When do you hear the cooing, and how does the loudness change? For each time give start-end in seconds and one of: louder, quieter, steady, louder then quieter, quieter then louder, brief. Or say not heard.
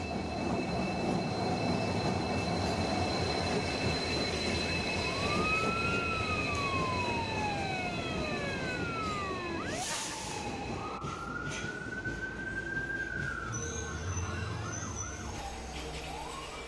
not heard.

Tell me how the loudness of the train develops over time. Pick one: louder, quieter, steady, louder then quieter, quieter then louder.
quieter.